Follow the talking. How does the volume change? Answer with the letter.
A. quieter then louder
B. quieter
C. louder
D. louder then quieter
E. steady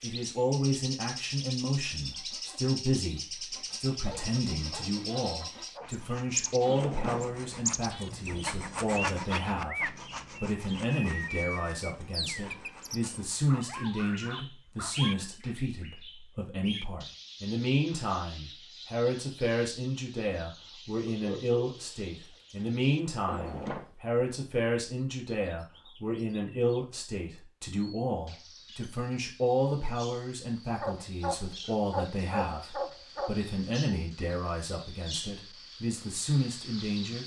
E.